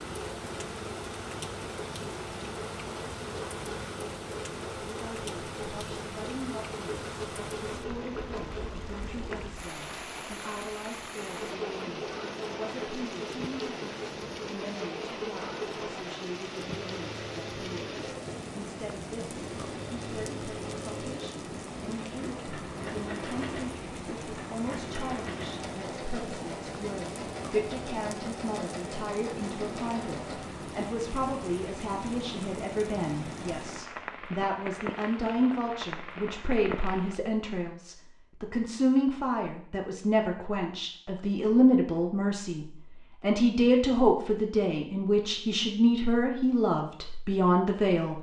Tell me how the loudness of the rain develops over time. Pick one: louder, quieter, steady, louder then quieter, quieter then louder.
steady.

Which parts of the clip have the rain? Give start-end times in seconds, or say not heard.
0.0-37.2.